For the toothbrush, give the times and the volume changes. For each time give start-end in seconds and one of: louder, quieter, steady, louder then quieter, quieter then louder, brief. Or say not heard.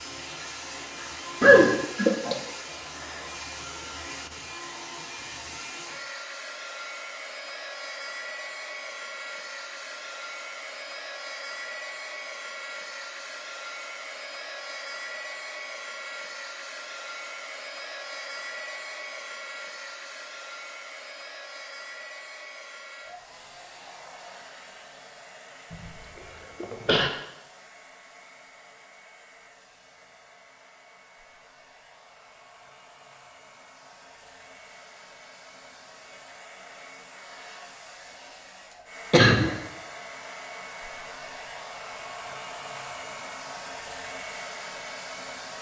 not heard.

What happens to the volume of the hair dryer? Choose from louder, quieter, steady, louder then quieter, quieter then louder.
quieter then louder.